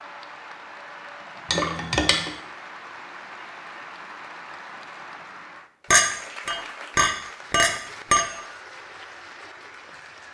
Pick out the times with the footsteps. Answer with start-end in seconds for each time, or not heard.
not heard.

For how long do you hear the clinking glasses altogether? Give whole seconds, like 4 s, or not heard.
3 s.